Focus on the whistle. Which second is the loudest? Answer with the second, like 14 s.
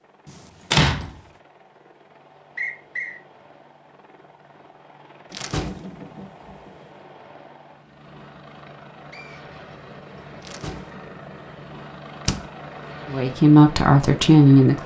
3 s.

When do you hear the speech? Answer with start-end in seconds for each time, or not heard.
13.1-14.8.